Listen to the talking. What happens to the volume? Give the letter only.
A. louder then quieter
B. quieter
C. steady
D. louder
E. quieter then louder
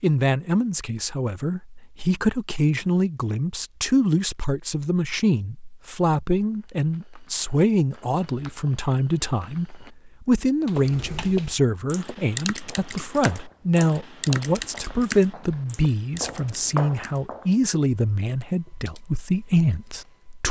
C.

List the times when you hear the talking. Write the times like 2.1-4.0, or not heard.
0.0-20.4.